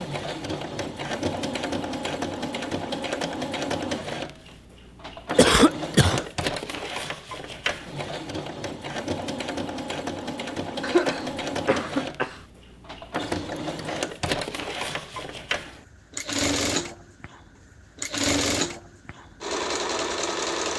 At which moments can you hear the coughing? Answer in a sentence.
The coughing can be heard from 5.3 to 6.2 s and from 10.8 to 12.4 s.